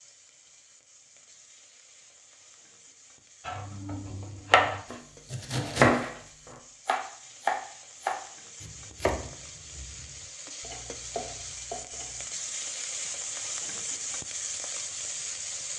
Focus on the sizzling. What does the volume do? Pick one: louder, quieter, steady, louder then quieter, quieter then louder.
louder.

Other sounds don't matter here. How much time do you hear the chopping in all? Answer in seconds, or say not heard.
9 s.